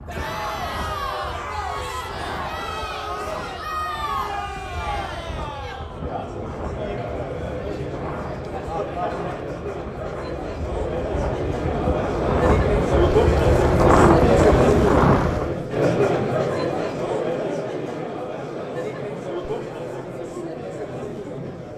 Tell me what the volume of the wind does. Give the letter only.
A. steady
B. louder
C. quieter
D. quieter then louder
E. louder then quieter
B.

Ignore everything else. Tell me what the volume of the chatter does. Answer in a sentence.
The volume of the chatter goes up, then down.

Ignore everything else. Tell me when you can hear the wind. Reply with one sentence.
The wind can be heard from 0.0 to 15.6 s.